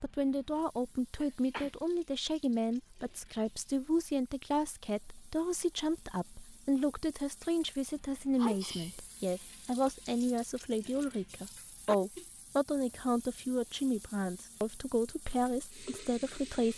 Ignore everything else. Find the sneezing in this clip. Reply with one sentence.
The sneezing can be heard from 1.1 to 1.7 s, from 8.3 to 9.0 s and from 11.8 to 12.2 s.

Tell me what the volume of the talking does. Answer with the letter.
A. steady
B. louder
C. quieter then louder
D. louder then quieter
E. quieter
A.